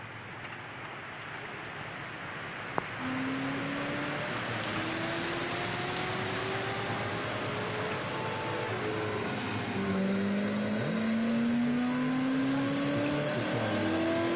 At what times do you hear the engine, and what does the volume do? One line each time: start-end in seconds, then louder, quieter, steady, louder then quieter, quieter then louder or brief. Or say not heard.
3.0-14.3 louder.